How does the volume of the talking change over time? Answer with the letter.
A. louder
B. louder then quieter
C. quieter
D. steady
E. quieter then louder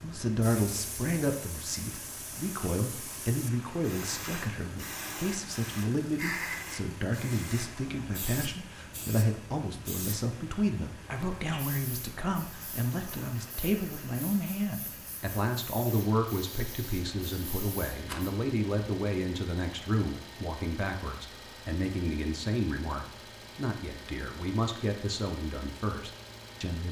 D.